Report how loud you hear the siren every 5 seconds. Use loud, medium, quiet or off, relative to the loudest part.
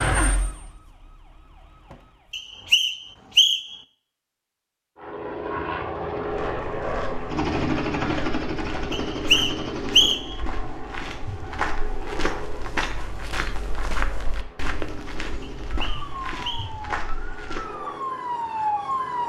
loud, off, off, loud.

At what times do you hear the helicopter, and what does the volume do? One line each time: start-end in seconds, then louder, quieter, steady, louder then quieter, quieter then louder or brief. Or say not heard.
5.0-19.2 quieter.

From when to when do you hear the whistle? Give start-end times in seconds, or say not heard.
2.3-3.8, 8.9-10.3, 15.4-16.7.